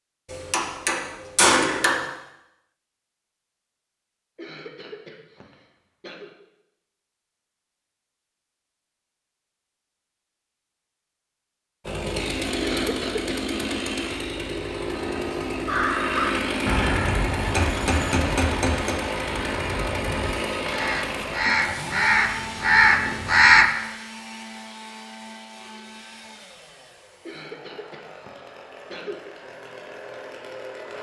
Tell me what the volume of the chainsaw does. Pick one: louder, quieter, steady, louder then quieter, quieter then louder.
quieter.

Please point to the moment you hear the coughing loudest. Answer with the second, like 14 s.
13 s.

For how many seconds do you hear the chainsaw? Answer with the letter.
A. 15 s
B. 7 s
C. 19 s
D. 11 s
C.